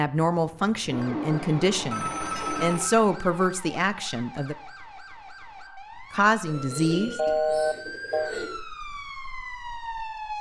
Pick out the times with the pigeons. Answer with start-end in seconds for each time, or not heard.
0.8-2.8, 6.5-8.4.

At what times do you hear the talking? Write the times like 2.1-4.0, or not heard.
0.0-4.5, 6.1-7.4.